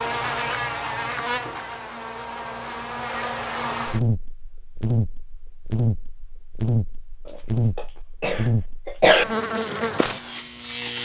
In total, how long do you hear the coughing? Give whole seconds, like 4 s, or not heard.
2 s.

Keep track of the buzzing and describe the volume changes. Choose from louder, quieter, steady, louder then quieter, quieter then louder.
steady.